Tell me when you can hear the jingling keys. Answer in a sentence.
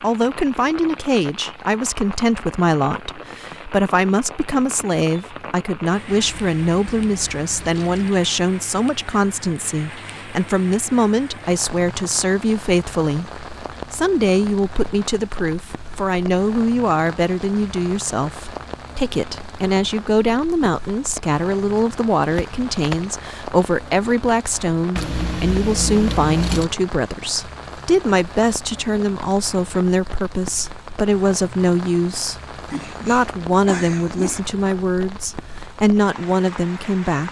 The jingling keys can be heard from 6.0 to 8.1 s, from 22.2 to 23.1 s and from 24.9 to 26.7 s.